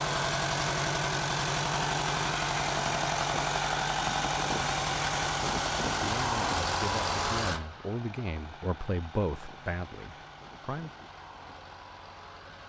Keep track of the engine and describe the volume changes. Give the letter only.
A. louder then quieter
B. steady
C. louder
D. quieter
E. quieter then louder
D.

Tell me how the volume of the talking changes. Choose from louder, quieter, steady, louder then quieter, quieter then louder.
louder then quieter.